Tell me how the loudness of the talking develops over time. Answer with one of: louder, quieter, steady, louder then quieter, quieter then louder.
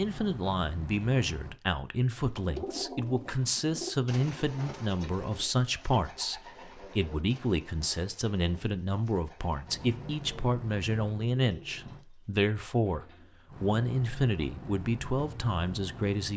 steady.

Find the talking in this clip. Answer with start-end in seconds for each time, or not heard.
0.0-16.3.